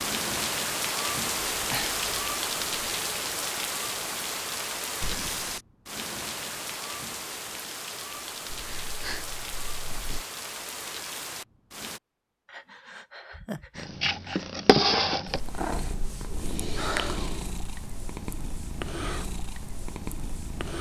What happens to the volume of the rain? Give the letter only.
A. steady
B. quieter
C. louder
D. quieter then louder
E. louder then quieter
B.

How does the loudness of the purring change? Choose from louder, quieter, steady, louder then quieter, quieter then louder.
quieter.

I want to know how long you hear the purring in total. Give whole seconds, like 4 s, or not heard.
7 s.